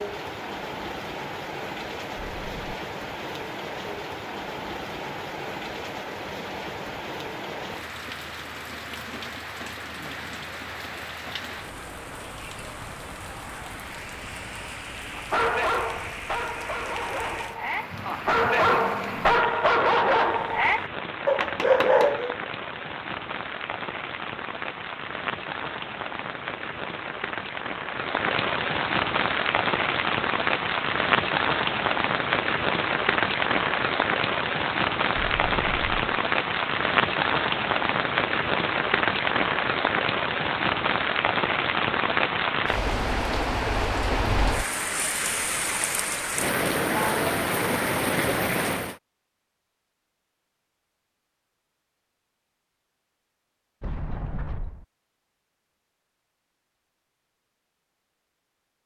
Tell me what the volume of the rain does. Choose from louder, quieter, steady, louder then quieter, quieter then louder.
louder.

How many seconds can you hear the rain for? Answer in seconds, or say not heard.
49 s.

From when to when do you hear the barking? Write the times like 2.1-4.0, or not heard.
15.2-22.4.